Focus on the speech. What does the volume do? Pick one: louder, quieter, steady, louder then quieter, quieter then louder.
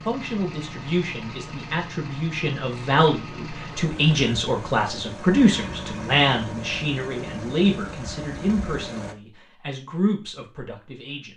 louder then quieter.